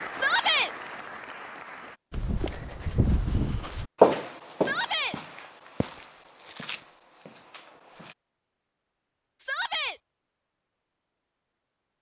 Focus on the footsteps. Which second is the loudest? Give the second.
4 s.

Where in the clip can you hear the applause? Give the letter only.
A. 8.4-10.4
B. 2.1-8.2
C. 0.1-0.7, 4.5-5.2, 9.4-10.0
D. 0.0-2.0
D.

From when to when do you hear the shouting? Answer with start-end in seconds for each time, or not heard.
0.1-0.7, 4.5-5.2, 9.4-10.0.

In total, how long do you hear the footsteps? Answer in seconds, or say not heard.
6 s.